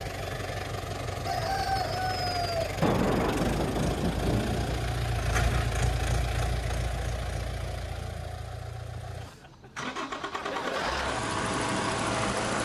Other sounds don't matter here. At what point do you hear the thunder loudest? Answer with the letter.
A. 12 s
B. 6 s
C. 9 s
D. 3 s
D.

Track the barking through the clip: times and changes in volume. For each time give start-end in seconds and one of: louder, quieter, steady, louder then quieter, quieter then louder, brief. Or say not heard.
not heard.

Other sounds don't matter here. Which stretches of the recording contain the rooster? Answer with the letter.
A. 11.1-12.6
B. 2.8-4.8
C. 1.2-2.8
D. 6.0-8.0
C.